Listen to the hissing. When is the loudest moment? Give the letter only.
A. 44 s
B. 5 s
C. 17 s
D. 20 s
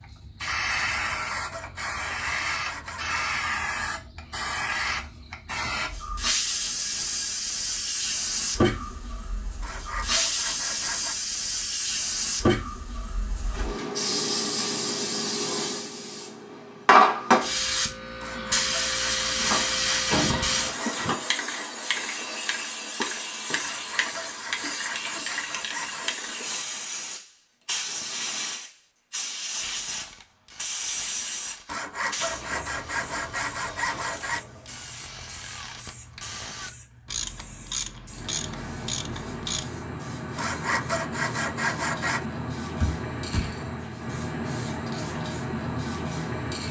C.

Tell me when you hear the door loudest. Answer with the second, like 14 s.
20 s.